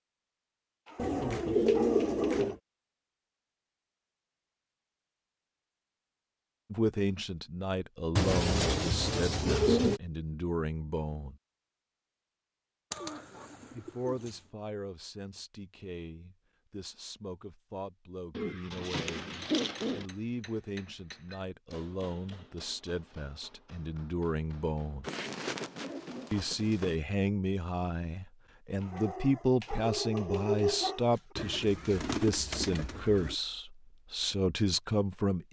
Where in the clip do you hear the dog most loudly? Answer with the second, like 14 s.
31 s.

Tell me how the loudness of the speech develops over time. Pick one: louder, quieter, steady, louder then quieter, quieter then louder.
quieter then louder.